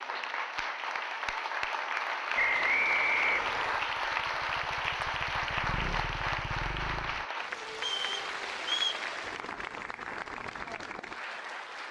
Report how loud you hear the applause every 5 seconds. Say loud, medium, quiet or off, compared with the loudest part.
loud, loud, medium.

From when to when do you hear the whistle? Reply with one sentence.
You can hear the whistle from 2.4 to 3.9 s and from 7.8 to 9.1 s.